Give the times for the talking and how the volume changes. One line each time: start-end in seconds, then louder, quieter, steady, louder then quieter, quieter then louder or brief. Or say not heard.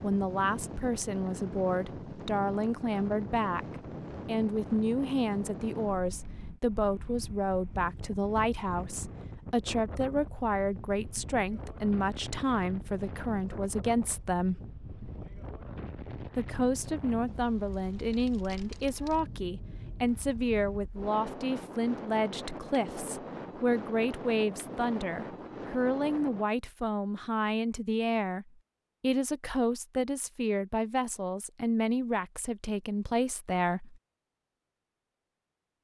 0.0-14.6 steady
16.4-34.0 steady.